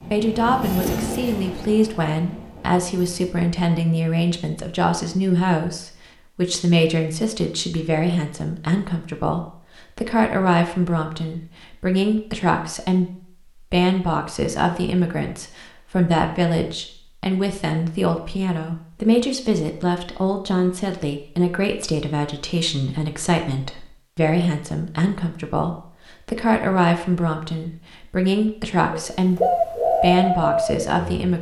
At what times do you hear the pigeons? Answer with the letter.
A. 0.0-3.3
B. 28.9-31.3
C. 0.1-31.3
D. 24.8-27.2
B.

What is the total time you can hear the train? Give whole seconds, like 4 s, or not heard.
3 s.